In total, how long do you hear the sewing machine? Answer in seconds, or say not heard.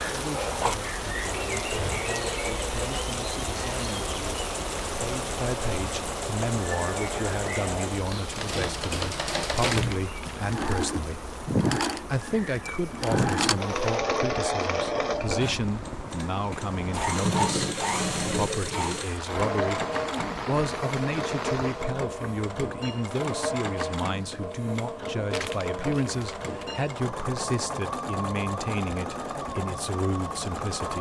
31 s.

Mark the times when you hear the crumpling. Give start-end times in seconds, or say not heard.
9.6-10.7, 25.3-26.6.